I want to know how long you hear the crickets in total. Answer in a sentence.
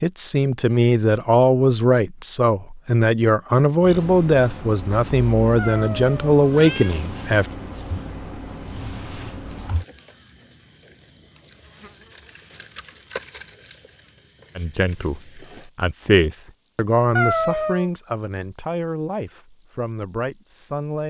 The crickets can be heard for 17 seconds in total.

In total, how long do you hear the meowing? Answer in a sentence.
The meowing can be heard for 2 seconds in total.